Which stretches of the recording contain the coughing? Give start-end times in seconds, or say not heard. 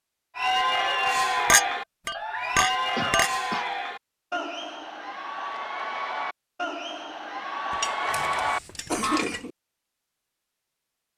3.0-3.7, 8.1-9.5.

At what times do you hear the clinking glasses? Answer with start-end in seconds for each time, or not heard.
1.4-3.3, 7.7-9.4.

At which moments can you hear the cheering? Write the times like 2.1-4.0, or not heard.
0.3-9.2.